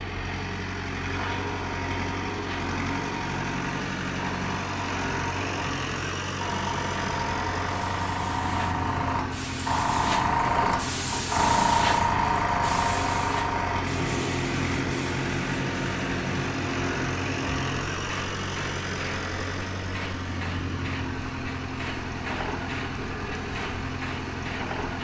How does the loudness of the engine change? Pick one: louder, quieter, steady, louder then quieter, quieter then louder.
steady.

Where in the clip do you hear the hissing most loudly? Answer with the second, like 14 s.
12 s.